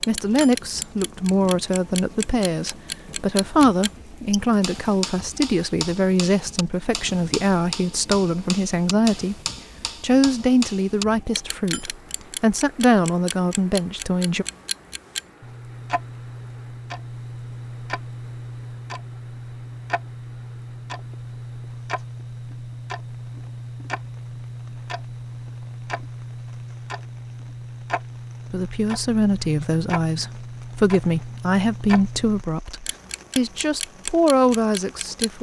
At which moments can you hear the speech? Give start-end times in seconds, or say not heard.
0.1-9.3, 10.0-14.4, 28.5-35.3.